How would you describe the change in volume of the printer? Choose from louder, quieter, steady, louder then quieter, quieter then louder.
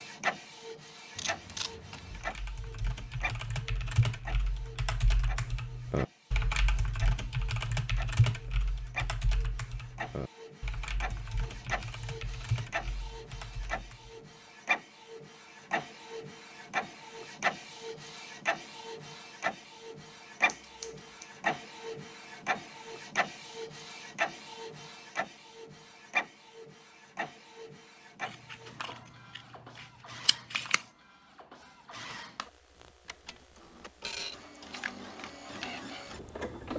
louder then quieter.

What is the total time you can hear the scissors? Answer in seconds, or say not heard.
3 s.